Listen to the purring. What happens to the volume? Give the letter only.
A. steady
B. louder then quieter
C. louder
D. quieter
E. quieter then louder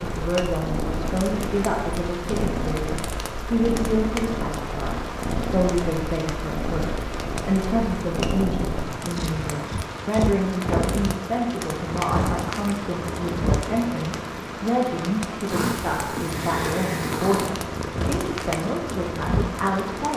A.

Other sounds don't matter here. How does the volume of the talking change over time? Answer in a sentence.
The volume of the talking stays about the same.